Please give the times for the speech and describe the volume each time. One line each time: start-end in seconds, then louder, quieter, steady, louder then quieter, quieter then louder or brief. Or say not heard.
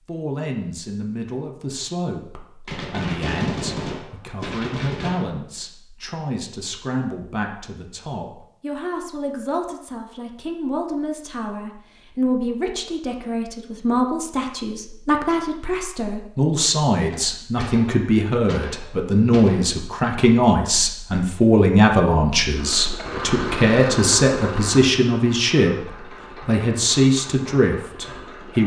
0.1-28.6 louder.